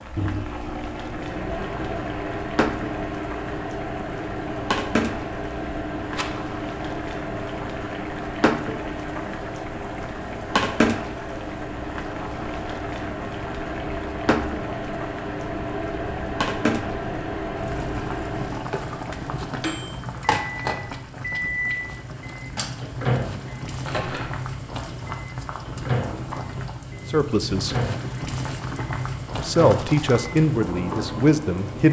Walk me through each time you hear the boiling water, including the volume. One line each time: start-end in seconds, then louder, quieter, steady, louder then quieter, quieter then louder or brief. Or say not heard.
0.0-31.8 steady.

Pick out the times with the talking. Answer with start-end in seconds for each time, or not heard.
27.1-27.8, 29.4-31.8.